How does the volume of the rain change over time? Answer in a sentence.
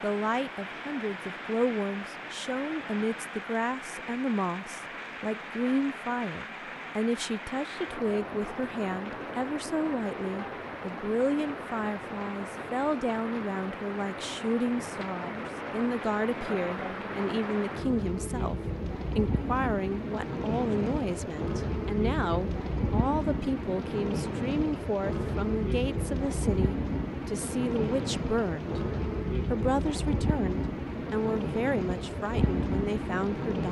The loudness of the rain goes up.